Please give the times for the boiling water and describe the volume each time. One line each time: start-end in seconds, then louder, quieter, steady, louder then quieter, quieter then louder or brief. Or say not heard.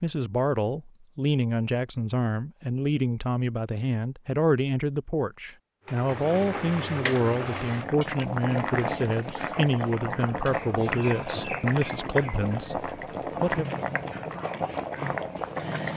5.8-15.9 steady.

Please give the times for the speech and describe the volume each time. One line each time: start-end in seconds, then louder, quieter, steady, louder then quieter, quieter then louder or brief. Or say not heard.
0.0-13.7 steady.